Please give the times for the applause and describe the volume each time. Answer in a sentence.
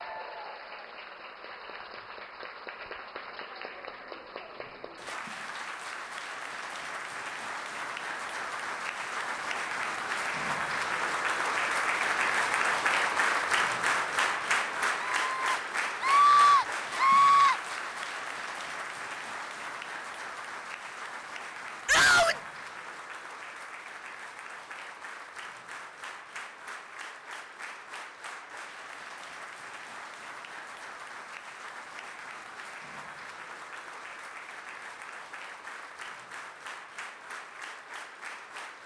The applause can be heard from 0.0 to 38.8 s, getting louder then quieter.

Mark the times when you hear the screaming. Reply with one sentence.
The screaming can be heard from 15.0 to 17.6 s and from 21.9 to 22.4 s.